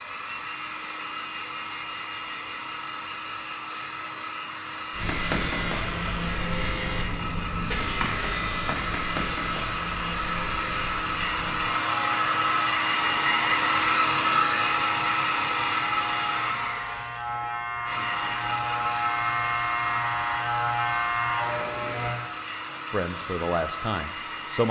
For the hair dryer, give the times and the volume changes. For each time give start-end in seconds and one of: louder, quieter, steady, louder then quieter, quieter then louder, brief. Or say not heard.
0.0-24.6 louder then quieter.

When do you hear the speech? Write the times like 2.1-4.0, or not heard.
22.9-24.6.